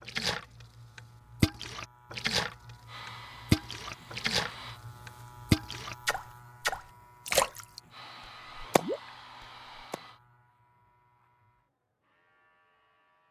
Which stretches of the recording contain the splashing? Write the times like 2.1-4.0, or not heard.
0.1-7.8, 8.6-9.0.